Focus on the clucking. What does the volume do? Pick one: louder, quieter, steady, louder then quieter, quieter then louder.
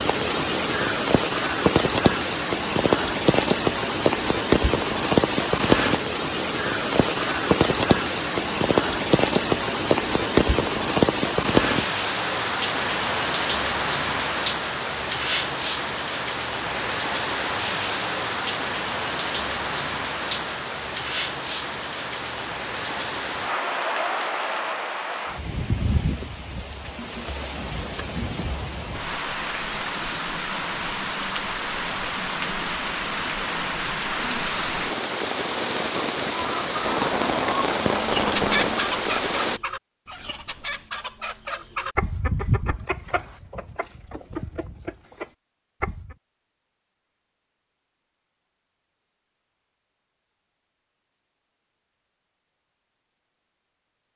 quieter.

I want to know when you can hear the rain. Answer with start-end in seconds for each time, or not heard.
0.0-39.6.